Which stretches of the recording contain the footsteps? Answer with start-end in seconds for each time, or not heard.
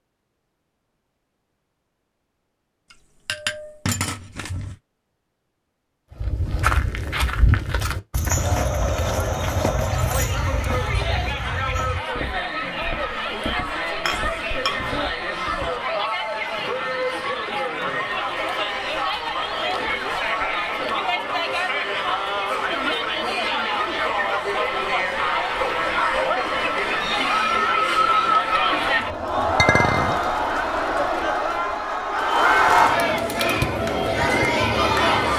6.1-15.8.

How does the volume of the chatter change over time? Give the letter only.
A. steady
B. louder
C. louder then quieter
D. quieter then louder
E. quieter
B.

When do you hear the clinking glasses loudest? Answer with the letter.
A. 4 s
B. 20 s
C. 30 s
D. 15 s
C.